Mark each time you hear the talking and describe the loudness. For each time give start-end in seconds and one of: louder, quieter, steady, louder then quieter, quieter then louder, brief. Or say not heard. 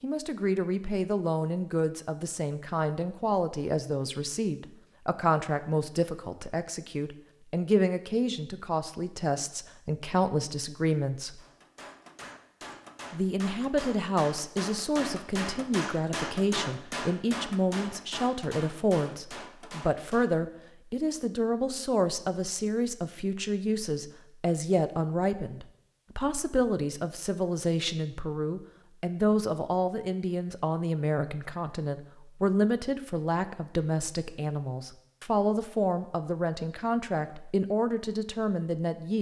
0.0-11.4 steady
13.1-39.1 steady.